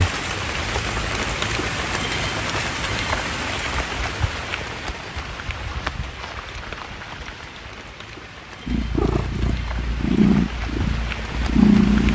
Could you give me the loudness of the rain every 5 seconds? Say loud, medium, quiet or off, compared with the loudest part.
loud, medium, medium.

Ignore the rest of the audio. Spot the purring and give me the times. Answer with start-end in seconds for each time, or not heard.
8.7-12.1.